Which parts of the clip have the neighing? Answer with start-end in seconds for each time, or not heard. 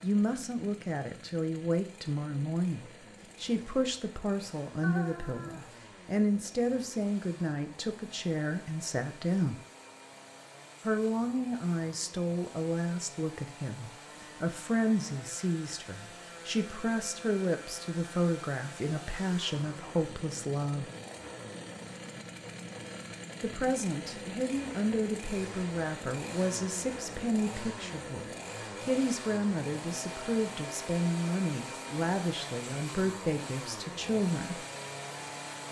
4.8-5.7.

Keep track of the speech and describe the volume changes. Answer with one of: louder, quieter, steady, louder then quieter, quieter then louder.
steady.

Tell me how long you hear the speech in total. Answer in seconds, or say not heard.
31 s.